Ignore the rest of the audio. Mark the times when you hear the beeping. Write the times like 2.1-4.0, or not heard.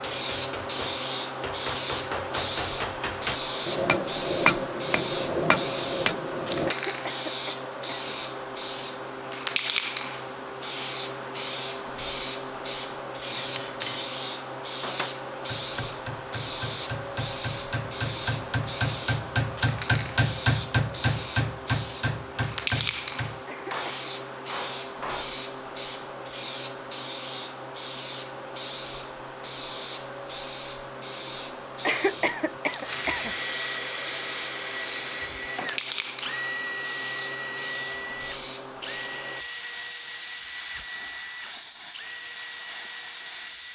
not heard.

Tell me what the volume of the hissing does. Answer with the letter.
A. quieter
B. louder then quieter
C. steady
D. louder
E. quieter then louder
A.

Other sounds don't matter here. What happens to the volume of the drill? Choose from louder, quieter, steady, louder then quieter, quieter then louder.
quieter.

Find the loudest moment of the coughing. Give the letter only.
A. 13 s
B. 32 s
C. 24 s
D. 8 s
B.